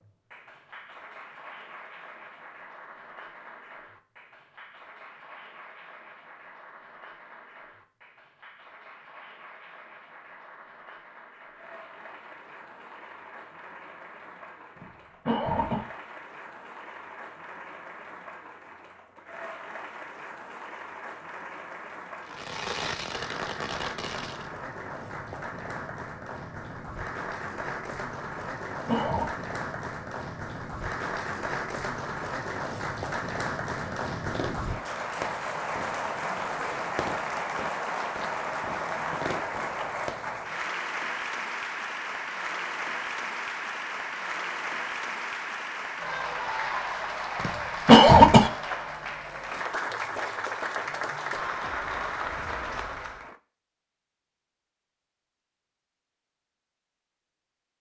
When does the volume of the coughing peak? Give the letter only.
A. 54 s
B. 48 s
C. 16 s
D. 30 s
B.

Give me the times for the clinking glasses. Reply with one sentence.
The clinking glasses can't be heard in this clip.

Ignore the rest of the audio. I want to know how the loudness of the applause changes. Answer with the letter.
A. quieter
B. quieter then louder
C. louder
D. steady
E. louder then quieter
C.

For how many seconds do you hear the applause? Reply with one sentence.
The applause can be heard for 53 seconds in total.